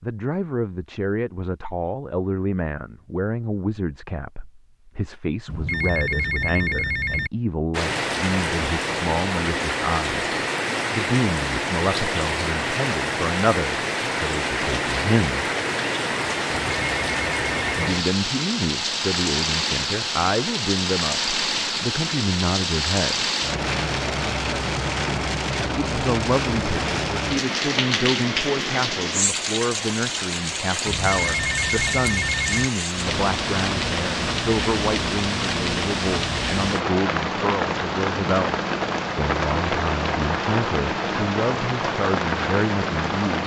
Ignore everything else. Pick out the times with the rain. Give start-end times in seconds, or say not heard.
7.7-43.4.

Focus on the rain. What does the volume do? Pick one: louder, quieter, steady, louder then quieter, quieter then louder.
steady.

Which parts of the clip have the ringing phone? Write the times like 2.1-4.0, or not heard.
5.5-7.3, 16.4-17.9, 30.9-32.7.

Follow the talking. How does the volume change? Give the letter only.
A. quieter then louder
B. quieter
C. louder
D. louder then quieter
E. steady
E.